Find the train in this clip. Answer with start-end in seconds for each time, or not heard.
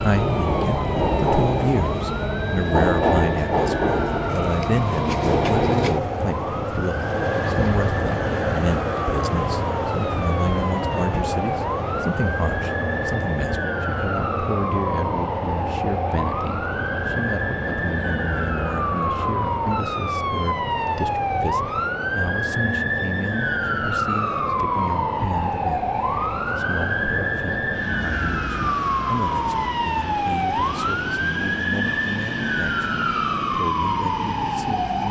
0.0-35.0.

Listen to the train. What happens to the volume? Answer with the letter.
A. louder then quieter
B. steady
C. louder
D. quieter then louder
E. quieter
E.